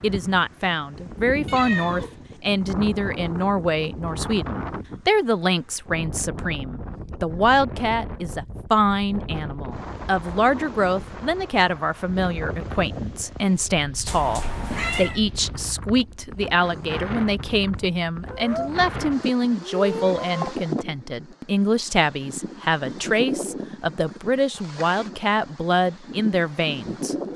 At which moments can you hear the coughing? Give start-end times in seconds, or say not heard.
not heard.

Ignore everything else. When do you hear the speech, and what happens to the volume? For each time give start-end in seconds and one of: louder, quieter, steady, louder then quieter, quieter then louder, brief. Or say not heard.
0.0-27.1 steady.